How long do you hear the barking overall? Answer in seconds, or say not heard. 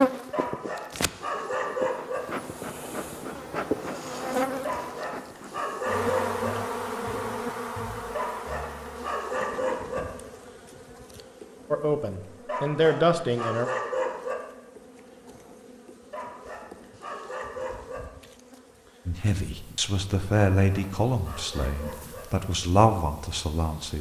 11 s.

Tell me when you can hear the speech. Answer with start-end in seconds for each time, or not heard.
11.7-13.7, 19.1-23.9.